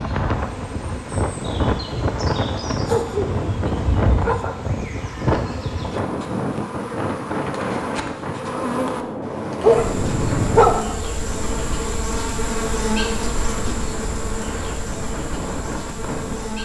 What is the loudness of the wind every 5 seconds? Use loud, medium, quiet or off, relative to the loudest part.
loud, loud, medium, medium.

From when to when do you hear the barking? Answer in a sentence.
The barking can be heard from 2.8 to 4.5 s and from 9.6 to 10.8 s.